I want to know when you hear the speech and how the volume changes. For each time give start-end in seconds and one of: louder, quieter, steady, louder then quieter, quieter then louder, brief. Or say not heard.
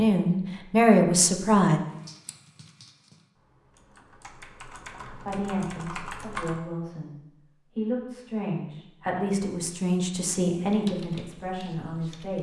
0.0-1.8 brief
5.0-7.2 brief
7.8-12.3 louder then quieter.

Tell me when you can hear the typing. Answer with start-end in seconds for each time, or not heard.
1.9-6.6, 10.7-12.3.